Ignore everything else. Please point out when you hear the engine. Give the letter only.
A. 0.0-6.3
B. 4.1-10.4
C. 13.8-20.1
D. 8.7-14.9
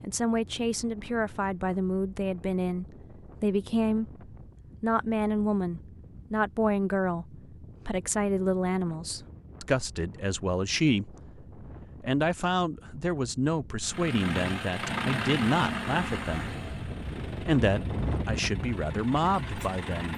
C.